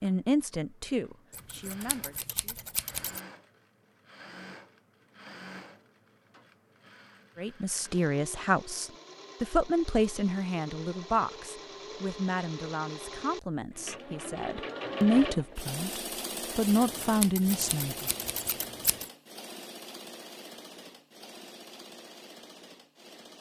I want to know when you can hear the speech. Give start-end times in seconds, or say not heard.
0.0-2.4, 7.3-18.1.